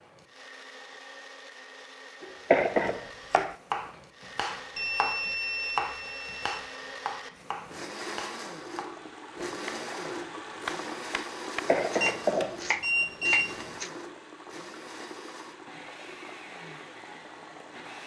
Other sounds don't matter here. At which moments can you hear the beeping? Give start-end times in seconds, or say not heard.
4.8-6.6, 12.0-13.7.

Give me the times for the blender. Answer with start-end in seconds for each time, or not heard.
0.0-18.0.